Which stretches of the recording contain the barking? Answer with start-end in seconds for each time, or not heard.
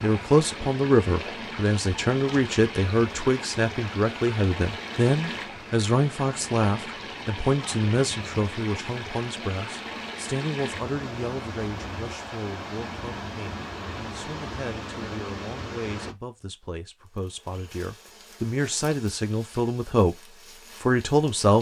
not heard.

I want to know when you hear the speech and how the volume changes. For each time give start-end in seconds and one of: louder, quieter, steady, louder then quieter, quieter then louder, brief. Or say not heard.
0.0-21.5 quieter then louder.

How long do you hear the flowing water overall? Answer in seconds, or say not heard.
16 s.